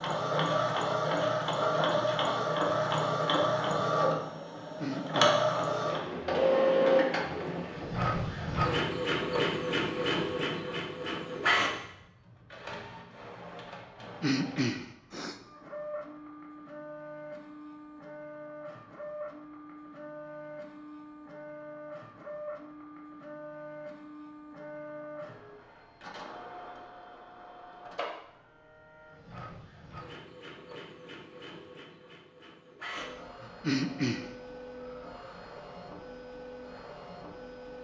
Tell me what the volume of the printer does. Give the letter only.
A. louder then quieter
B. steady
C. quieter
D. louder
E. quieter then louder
C.